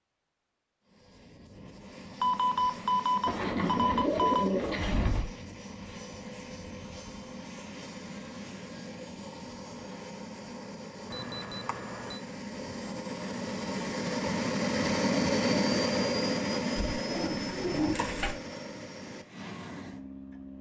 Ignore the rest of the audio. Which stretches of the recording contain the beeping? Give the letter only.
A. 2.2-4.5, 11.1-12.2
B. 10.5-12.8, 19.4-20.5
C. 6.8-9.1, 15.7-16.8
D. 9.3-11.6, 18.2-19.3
A.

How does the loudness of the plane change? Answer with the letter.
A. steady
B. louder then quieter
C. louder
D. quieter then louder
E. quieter
B.